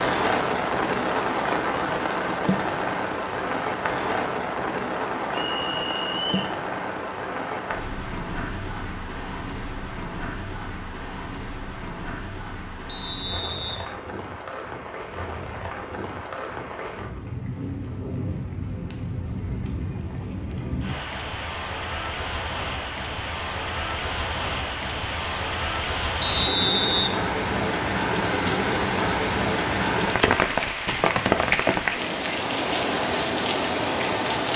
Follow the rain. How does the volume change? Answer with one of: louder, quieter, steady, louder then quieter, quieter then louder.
quieter then louder.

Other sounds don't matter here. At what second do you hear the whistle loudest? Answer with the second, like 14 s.
27 s.